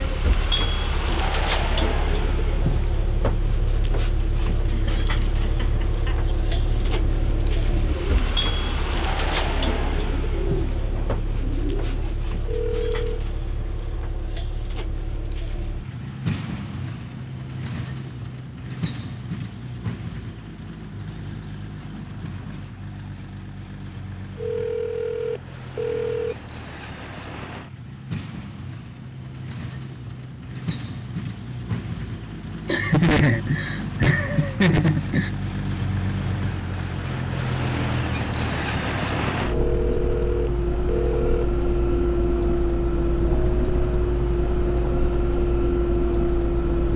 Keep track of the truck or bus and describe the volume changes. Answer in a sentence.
The loudness of the truck or bus goes down, then up.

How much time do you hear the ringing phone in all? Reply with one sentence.
You can hear the ringing phone for 5 seconds altogether.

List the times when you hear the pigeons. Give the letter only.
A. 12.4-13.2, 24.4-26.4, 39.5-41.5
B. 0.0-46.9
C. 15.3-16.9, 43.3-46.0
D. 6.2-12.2
D.